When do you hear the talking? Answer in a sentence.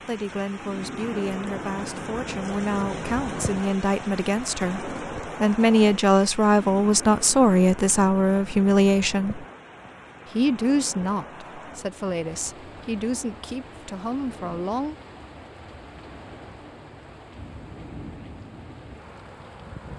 The talking can be heard from 0.1 to 9.4 s and from 10.3 to 14.9 s.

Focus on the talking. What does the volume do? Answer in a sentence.
The loudness of the talking goes up, then down.